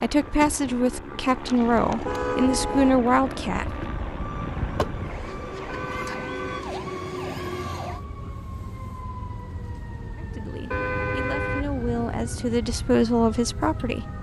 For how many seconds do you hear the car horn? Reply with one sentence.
The car horn can be heard for 5 seconds in total.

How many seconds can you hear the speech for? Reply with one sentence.
The speech can be heard for 8 seconds in total.